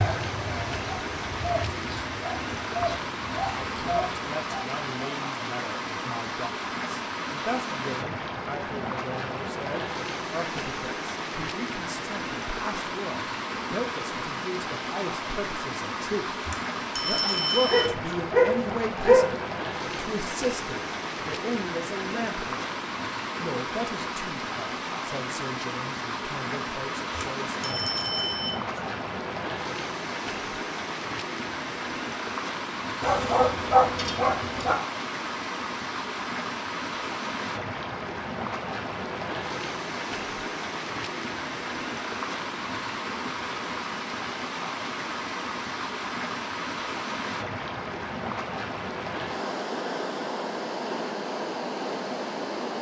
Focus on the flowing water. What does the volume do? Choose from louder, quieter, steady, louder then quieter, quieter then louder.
steady.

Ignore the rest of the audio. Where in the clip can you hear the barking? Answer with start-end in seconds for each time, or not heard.
17.6-19.4, 33.0-34.8.